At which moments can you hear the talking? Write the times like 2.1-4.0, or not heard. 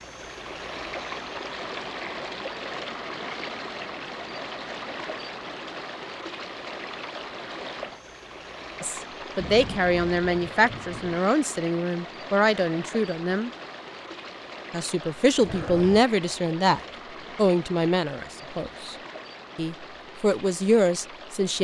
8.8-13.5, 14.7-18.9, 19.6-21.5.